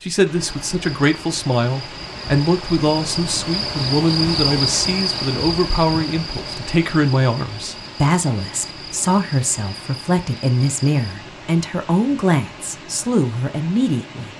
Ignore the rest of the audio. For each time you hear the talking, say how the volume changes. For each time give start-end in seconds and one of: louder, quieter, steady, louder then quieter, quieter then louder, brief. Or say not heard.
0.0-14.3 steady.